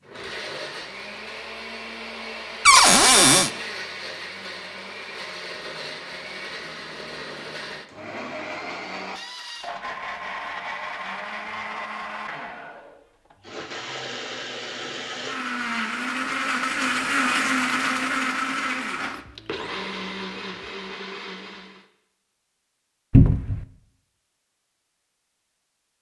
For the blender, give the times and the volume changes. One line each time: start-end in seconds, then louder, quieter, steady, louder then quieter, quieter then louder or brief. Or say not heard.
0.0-21.9 louder.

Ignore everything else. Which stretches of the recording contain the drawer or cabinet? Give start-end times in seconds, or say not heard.
2.6-3.5, 23.1-23.6.